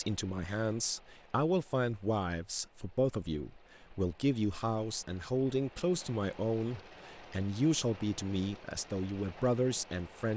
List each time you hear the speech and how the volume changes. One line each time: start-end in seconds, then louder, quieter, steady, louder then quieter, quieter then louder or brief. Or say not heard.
0.0-10.3 steady.